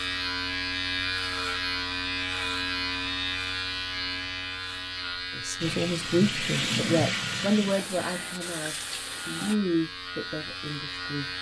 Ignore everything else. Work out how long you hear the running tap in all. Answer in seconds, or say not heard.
4 s.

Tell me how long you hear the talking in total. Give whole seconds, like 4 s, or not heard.
6 s.